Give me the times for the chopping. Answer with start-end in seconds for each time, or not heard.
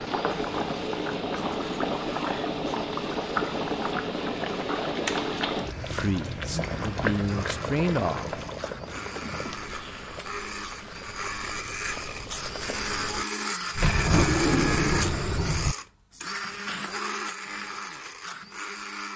not heard.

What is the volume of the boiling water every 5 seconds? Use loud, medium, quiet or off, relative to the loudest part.
loud, loud, quiet, off.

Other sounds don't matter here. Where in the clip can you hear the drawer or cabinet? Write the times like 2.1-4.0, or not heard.
13.8-15.8.